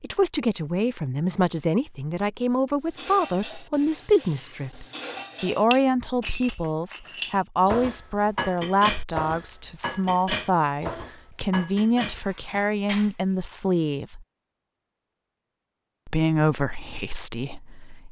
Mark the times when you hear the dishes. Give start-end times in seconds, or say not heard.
2.9-13.2.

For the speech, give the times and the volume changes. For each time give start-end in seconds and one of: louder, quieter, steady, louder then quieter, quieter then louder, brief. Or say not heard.
0.0-14.2 steady
16.1-18.0 brief.